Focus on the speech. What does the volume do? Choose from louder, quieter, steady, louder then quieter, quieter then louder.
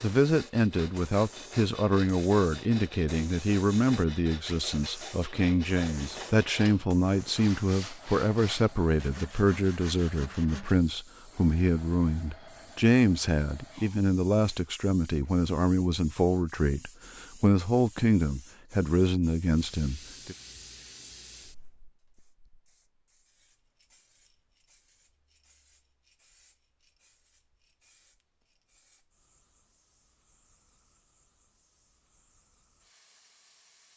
steady.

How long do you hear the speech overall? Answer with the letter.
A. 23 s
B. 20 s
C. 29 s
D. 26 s
B.